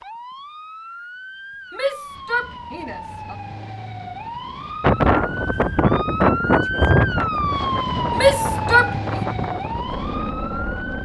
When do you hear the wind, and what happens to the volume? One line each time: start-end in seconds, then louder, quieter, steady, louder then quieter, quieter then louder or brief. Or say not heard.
4.8-11.0 quieter.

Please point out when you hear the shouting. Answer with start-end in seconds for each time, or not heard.
1.7-3.4, 8.1-9.2.